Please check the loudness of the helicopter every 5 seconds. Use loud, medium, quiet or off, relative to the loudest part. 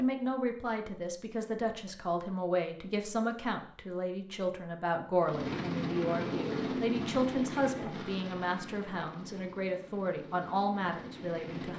off, loud, medium.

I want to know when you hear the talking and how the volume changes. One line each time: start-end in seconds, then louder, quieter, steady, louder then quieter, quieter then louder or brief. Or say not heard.
0.0-11.7 steady.